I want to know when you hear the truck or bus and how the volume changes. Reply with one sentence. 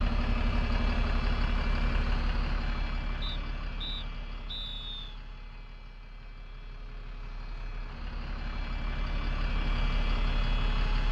You can hear the truck or bus from 0.0 to 11.0 s, getting quieter then louder.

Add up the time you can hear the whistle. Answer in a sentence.
You can hear the whistle for 2 seconds altogether.